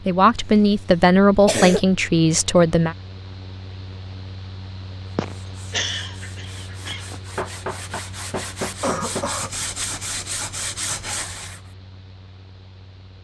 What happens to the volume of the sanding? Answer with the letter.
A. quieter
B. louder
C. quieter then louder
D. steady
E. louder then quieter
B.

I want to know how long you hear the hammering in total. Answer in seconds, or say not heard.
2 s.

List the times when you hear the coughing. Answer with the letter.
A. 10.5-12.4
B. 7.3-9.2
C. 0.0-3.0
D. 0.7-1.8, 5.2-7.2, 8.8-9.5
D.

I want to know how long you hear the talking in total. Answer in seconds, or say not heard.
3 s.